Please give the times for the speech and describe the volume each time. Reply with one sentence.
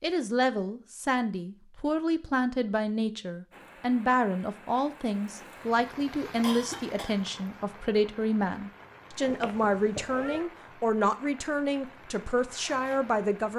You can hear the speech from 0.0 to 13.5 s, at a steady volume.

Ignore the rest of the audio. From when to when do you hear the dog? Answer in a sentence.
The dog can't be heard in this clip.